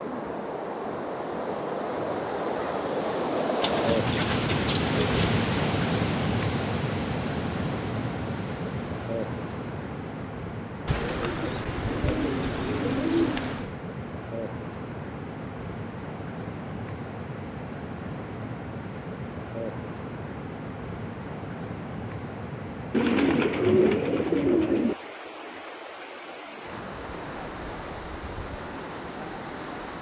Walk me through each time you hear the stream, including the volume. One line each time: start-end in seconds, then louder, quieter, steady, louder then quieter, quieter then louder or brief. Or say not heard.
0.0-29.9 quieter.